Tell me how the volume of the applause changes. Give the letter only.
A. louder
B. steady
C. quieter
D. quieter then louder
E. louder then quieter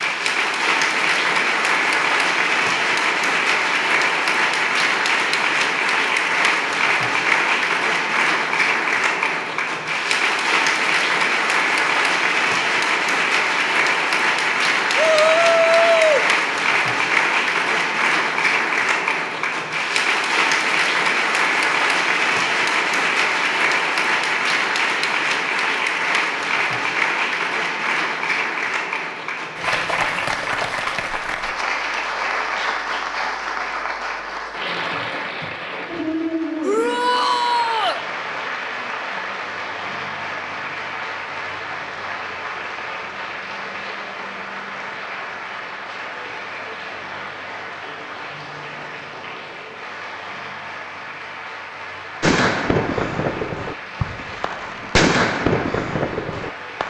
C.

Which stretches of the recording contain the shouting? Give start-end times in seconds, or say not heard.
14.9-16.2, 36.6-38.0.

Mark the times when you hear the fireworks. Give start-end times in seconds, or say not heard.
52.2-56.8.